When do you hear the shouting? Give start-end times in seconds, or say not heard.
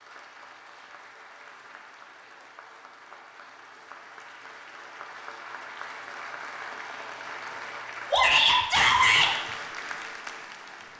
8.1-9.3.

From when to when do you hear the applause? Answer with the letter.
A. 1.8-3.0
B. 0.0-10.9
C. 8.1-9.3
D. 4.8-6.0
B.